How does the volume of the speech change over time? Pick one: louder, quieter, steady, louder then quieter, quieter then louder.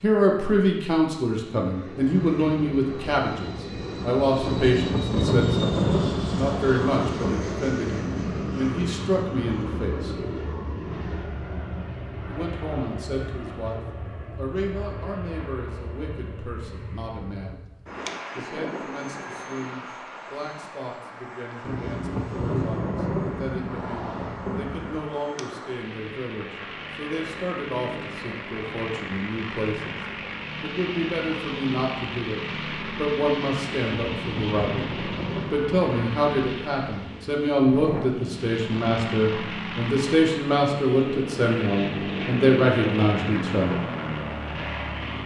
quieter then louder.